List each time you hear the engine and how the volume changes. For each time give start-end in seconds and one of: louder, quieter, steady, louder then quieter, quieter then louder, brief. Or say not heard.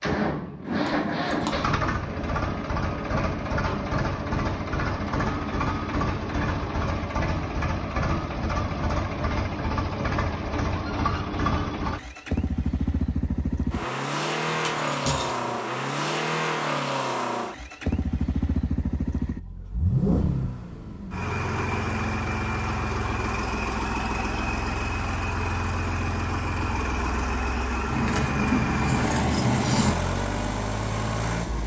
0.0-31.6 steady.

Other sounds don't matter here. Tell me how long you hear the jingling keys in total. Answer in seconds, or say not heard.
4 s.